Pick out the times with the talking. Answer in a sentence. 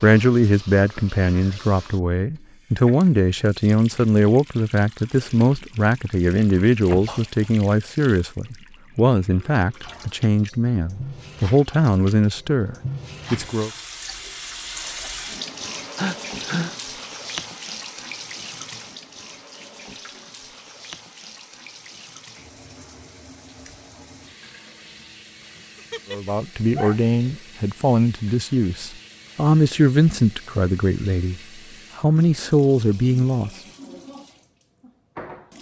The talking can be heard from 0.0 to 13.7 s and from 26.1 to 33.5 s.